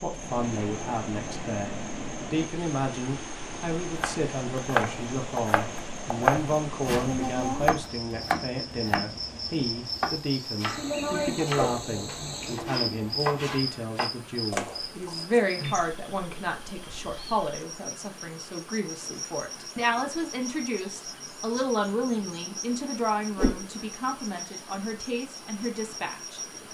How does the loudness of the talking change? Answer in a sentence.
The volume of the talking stays about the same.